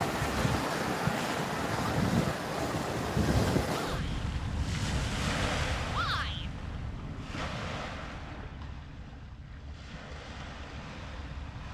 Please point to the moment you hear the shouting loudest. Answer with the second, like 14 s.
6 s.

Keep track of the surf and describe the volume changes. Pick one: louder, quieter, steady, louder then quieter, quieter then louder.
quieter.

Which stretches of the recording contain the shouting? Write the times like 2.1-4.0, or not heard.
3.7-4.2, 5.9-6.5.